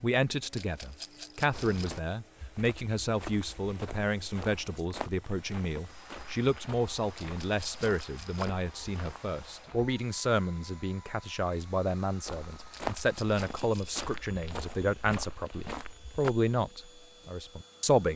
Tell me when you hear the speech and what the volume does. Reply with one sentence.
You can hear the speech from 0.0 to 18.1 s, at a steady volume.